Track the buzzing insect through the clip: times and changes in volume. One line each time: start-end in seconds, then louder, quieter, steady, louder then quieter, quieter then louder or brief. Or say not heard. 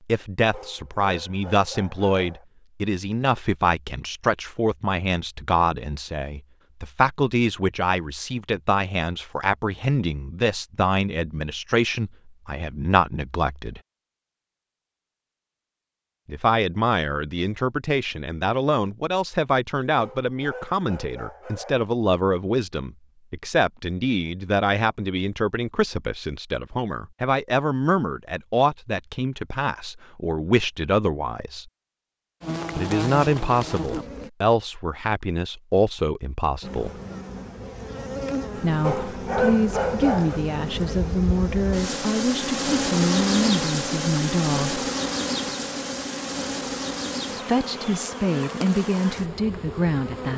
32.4-34.3 brief
36.6-50.3 louder then quieter.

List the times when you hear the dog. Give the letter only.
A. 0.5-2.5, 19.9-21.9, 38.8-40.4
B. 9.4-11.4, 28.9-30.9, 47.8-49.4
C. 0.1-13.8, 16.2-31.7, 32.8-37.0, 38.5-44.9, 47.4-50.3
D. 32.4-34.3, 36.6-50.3
A.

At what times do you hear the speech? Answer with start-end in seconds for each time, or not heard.
0.1-13.8, 16.2-31.7, 32.8-37.0, 38.5-44.9, 47.4-50.3.